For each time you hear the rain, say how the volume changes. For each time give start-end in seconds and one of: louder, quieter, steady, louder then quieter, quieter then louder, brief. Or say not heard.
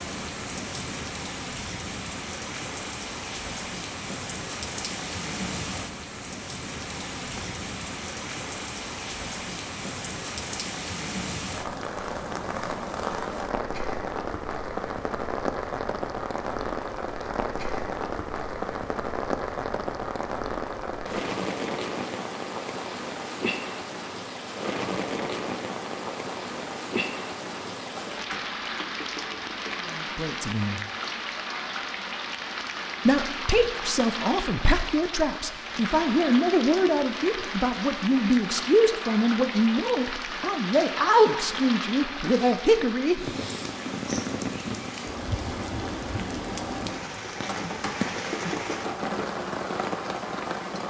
0.0-50.8 steady.